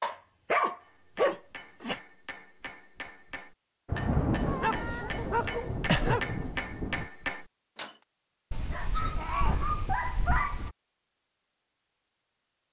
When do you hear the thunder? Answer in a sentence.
The thunder can be heard from 3.9 to 7.1 s.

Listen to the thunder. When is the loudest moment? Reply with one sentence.
The loudest moment of the thunder is at 4 seconds.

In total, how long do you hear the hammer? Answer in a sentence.
You can hear the hammer for 7 seconds altogether.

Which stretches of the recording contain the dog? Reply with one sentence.
You can hear the dog from 0.0 to 2.0 s, from 4.5 to 6.7 s and from 8.5 to 10.8 s.